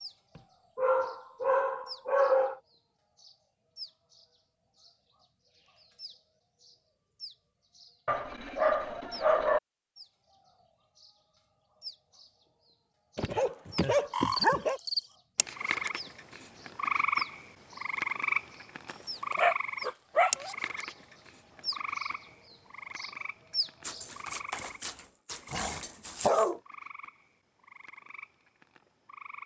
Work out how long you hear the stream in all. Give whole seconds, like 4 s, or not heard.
not heard.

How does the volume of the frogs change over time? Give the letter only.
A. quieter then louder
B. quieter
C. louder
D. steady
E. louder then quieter
B.